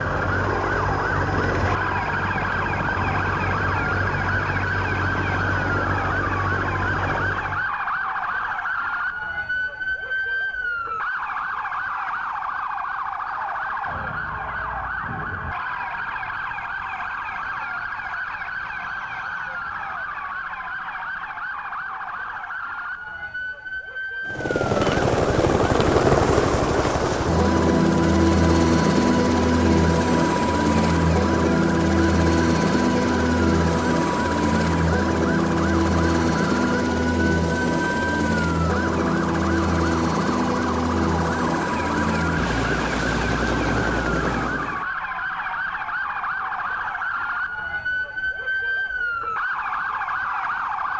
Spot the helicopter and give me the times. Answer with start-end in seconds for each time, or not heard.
0.0-7.8, 24.2-44.9.